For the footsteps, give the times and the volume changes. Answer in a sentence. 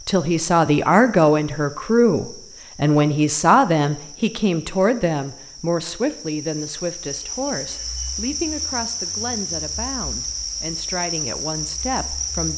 You can't hear the footsteps here.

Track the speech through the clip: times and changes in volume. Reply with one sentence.
You can hear the speech from 0.1 to 12.5 s, getting quieter.